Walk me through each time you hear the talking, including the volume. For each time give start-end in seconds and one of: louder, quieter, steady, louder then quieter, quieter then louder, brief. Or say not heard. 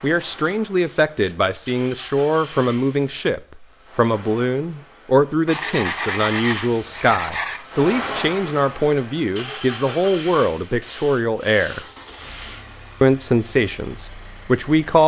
0.0-11.8 steady
13.0-15.0 brief.